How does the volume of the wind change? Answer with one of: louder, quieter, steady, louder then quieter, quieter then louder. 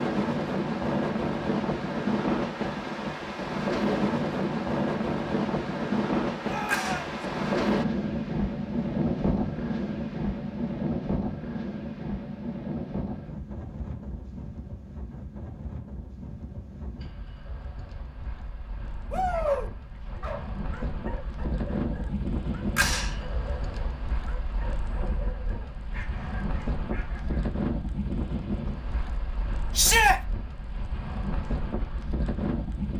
quieter then louder.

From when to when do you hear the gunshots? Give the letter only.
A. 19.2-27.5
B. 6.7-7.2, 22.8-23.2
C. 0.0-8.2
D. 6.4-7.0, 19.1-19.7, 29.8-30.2
B.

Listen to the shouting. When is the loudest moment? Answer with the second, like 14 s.
30 s.